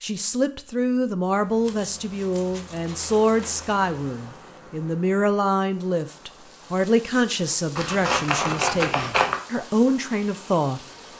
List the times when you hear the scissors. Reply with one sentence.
You can hear the scissors from 1.6 to 3.5 s and from 7.8 to 9.4 s.